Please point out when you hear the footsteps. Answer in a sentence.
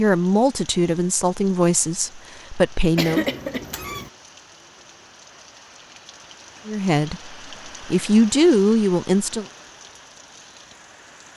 The footsteps can't be heard in this clip.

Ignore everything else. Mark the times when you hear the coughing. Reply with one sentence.
You can hear the coughing from 3.0 to 4.1 s.